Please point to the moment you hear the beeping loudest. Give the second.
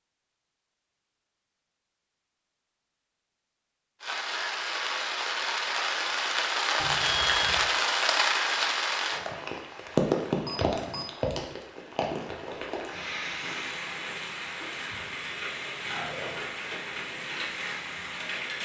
7 s.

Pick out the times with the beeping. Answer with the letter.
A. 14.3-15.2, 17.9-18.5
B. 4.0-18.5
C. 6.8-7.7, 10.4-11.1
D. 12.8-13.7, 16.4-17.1
C.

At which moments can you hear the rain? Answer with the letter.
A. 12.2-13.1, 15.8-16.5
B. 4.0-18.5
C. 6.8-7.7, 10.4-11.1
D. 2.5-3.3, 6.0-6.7
B.